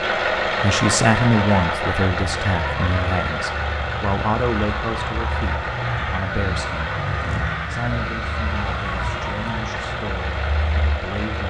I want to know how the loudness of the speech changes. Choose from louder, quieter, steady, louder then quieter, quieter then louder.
quieter.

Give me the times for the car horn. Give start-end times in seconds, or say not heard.
not heard.